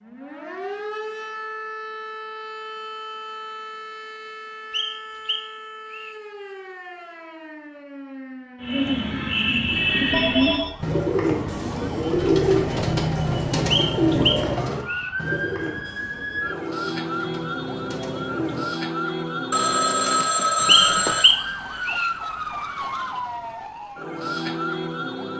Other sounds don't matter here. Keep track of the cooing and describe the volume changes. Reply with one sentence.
The volume of the cooing goes down.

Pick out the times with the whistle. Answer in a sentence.
You can hear the whistle from 4.7 to 6.2 s, from 13.7 to 15.1 s and from 20.6 to 22.1 s.